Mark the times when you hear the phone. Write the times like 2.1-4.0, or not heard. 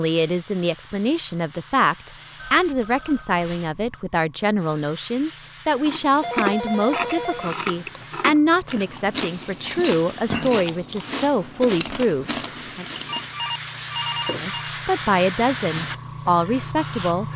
2.4-4.0, 6.2-8.1, 13.1-14.7.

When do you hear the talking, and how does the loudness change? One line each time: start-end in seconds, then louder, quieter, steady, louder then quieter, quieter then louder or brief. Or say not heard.
0.0-12.8 steady
14.4-17.2 brief.